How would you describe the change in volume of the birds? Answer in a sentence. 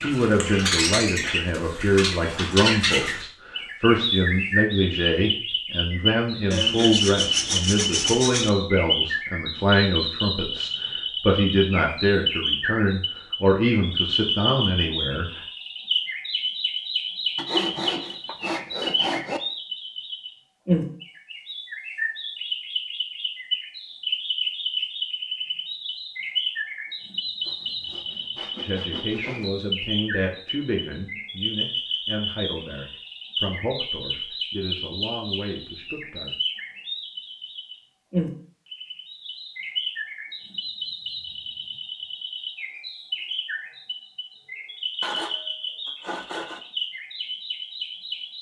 The loudness of the birds goes down.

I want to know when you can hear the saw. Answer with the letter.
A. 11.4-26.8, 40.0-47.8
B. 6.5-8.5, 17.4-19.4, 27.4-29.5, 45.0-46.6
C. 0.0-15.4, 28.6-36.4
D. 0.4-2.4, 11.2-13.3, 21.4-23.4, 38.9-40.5
B.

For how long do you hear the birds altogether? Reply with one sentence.
The birds can be heard for 48 seconds in total.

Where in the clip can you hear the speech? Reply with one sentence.
You can hear the speech from 0.0 to 15.4 s and from 28.6 to 36.4 s.